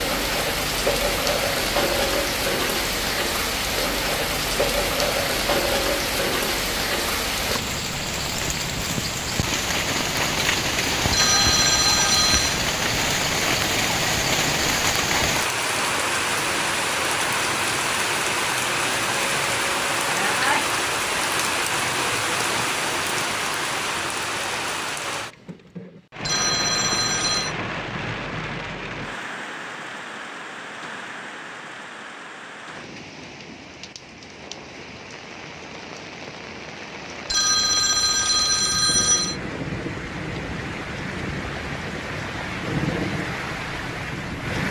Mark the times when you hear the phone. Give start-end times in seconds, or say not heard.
11.1-12.6, 26.2-27.6, 37.3-39.4.